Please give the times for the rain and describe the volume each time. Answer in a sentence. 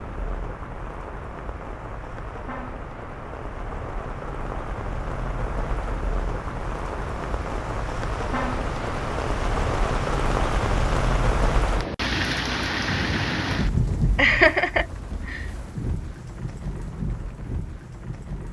You can hear the rain from 0.0 to 18.4 s, getting louder then quieter.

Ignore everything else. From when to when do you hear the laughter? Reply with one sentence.
You can hear the laughter from 14.2 to 15.4 s.